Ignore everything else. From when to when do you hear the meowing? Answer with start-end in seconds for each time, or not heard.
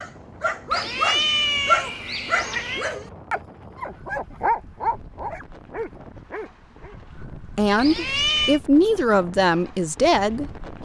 0.7-2.9, 7.8-8.6.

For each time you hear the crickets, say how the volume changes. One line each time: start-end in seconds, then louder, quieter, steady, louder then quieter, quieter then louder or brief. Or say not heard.
not heard.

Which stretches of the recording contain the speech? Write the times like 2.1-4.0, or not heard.
7.4-10.6.